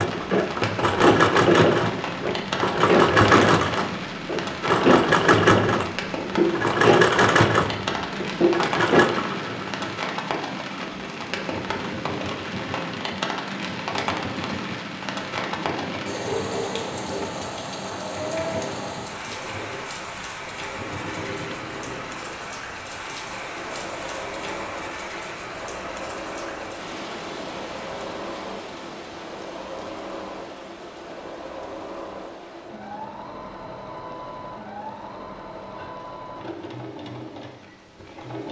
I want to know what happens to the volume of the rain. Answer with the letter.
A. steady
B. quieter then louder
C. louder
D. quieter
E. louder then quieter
D.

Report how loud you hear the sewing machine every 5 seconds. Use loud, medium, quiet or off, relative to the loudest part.
loud, loud, quiet, quiet, quiet, quiet, quiet, quiet.